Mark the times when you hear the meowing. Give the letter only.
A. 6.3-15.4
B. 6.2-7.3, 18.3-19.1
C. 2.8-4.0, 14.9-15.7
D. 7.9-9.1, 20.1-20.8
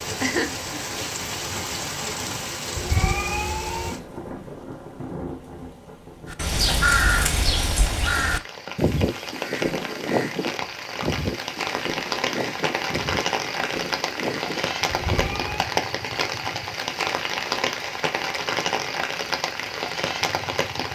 C.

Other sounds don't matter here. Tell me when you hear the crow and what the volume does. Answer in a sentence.
The crow can be heard from 6.3 to 15.4 s, getting quieter.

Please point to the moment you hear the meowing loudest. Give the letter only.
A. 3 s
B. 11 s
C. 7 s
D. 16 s
A.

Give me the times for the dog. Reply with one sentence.
The dog can't be heard in this clip.